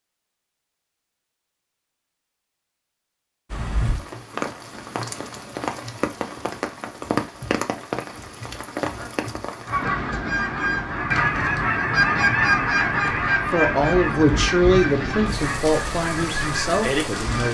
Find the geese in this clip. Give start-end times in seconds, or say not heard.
9.7-17.4.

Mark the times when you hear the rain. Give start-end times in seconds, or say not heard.
3.5-17.4.